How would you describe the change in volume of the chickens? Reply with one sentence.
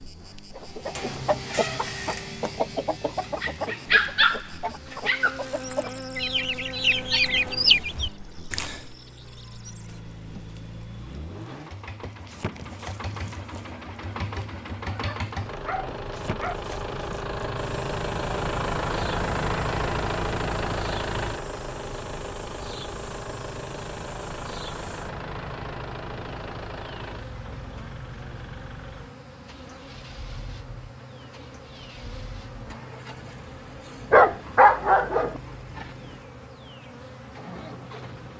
The loudness of the chickens goes down, then up.